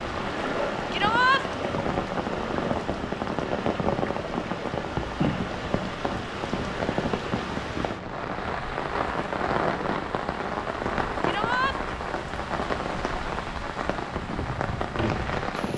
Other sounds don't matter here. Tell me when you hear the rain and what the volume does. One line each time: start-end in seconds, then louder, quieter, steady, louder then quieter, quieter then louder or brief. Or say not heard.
0.0-15.7 steady.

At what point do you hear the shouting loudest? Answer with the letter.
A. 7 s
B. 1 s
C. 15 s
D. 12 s
B.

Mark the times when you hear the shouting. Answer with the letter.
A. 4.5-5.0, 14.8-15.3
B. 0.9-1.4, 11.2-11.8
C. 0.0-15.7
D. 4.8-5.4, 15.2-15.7
B.